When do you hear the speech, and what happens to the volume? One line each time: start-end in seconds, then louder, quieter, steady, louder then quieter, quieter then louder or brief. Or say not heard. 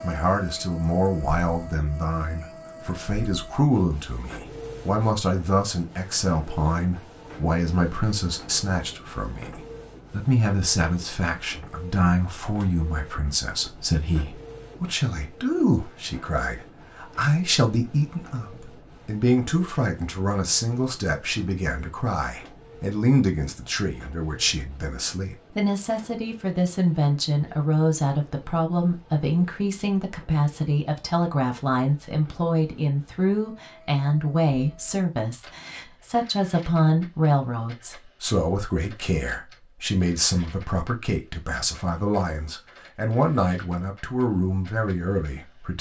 0.0-45.7 steady.